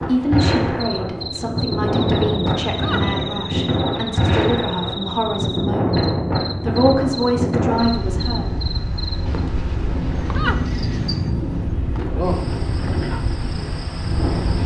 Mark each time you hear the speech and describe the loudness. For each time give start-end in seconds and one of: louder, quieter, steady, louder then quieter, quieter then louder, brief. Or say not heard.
0.0-8.5 louder.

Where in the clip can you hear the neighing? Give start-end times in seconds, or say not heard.
2.6-3.5, 10.2-11.3.